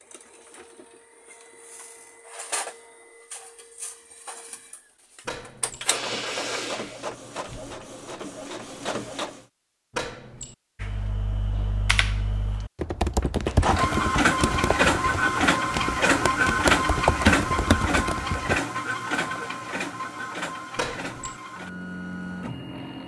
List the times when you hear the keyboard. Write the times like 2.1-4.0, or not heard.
10.8-18.6.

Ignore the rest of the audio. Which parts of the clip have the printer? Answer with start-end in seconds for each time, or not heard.
0.0-9.4, 13.4-23.0.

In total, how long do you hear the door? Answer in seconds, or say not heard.
2 s.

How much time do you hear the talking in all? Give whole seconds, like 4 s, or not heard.
not heard.